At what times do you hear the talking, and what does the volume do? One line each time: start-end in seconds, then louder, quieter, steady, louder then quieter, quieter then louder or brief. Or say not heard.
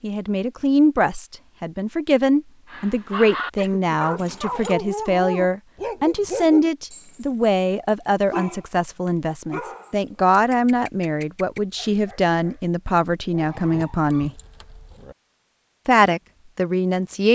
0.0-14.3 steady
15.8-17.2 brief.